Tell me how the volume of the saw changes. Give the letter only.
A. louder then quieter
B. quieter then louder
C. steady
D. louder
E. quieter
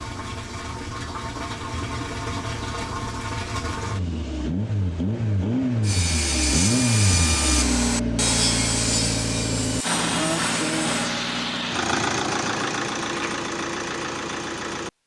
E.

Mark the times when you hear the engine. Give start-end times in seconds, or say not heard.
0.0-14.9.